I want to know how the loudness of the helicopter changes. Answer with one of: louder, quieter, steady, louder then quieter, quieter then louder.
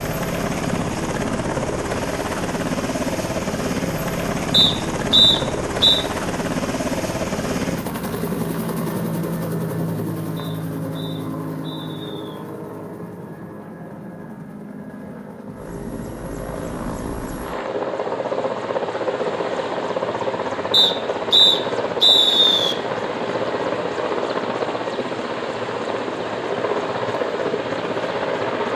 quieter then louder.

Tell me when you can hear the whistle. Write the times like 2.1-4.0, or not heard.
4.5-6.0, 10.3-12.3, 20.7-22.8.